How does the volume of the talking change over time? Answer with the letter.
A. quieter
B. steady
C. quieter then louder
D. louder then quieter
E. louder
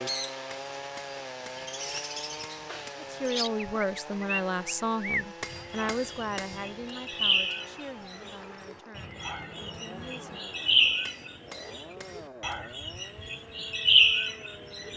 A.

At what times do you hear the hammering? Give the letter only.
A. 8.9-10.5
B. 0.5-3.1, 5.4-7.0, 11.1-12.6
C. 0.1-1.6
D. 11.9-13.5
B.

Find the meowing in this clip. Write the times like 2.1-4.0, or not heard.
8.9-10.5.